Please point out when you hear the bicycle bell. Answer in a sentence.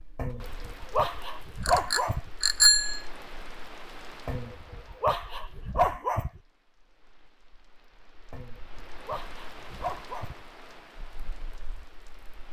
The bicycle bell can be heard from 1.6 to 3.0 s.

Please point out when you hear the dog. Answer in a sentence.
The dog can be heard from 0.1 to 2.3 s, from 4.2 to 6.4 s and from 8.3 to 10.4 s.